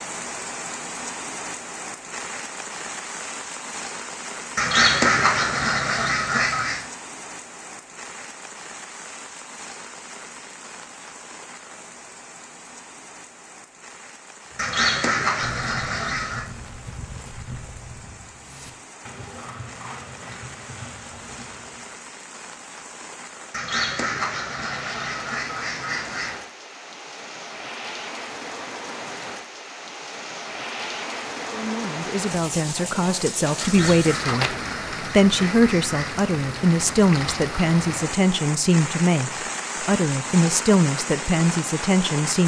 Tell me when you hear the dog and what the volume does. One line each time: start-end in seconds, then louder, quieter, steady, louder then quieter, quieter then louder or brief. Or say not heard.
not heard.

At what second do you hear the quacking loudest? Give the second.
5 s.